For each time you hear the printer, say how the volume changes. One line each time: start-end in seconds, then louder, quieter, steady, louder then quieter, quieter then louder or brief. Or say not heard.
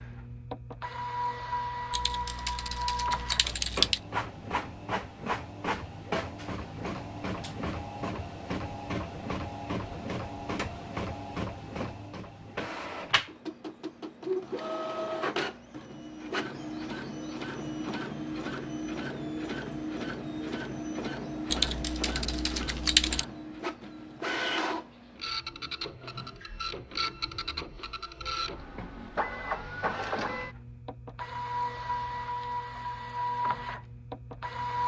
0.0-34.8 steady.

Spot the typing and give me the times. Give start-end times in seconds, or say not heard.
1.9-4.0, 21.5-23.2.